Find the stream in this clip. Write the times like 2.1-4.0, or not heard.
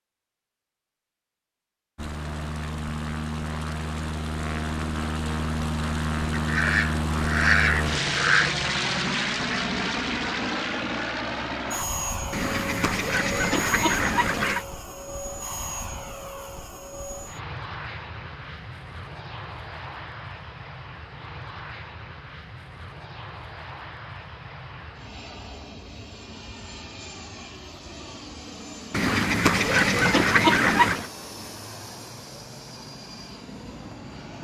not heard.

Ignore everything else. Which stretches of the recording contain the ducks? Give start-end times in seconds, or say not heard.
6.3-8.5, 12.3-14.7, 28.9-31.1.